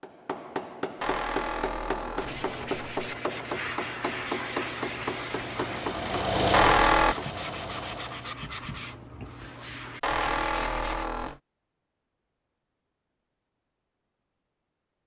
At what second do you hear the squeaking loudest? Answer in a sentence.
The loudest moment of the squeaking is at 7 seconds.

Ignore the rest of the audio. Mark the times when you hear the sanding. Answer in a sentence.
The sanding can be heard from 2.2 to 11.1 s.